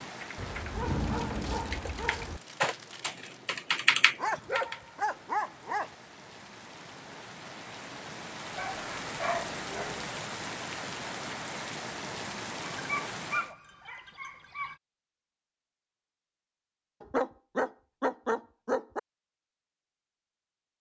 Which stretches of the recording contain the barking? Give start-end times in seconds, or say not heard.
0.3-2.4, 4.2-6.0, 8.6-10.1, 12.8-14.8, 17.0-19.0.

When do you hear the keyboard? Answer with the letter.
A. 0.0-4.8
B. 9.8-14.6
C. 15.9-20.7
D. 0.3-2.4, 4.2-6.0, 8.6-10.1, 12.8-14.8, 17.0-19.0
A.